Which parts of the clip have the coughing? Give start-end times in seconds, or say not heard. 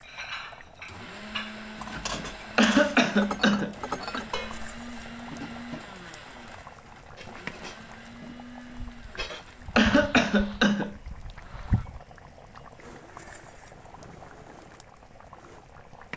2.5-4.2, 9.8-10.9.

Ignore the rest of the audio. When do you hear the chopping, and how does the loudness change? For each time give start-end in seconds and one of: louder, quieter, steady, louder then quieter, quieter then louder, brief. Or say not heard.
not heard.